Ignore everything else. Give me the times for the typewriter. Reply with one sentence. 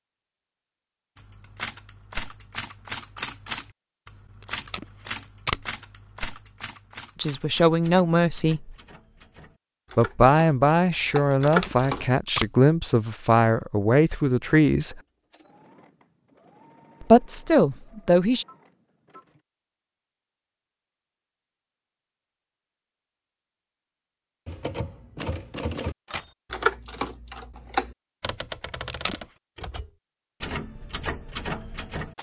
The typewriter can be heard from 1.1 to 12.1 s and from 24.4 to 32.1 s.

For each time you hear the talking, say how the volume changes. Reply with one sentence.
The talking can be heard briefly from 7.2 to 8.7 s; from 9.9 to 15.0 s, at a steady volume; and briefly from 17.0 to 18.4 s.